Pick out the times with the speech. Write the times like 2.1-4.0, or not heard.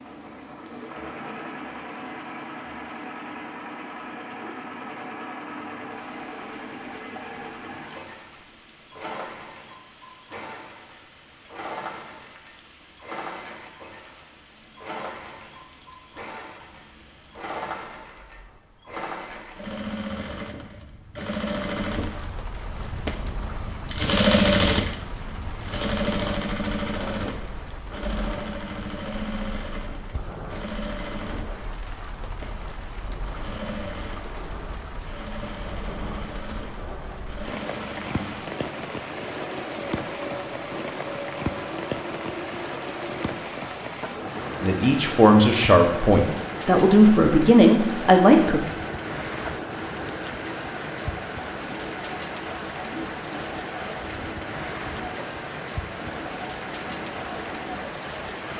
44.6-48.6.